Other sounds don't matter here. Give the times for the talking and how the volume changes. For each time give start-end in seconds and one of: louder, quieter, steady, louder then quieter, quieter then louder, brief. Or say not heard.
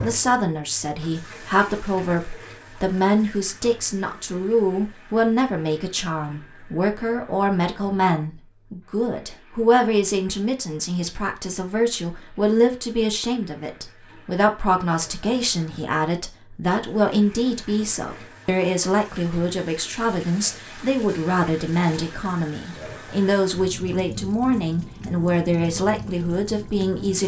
0.0-27.2 steady.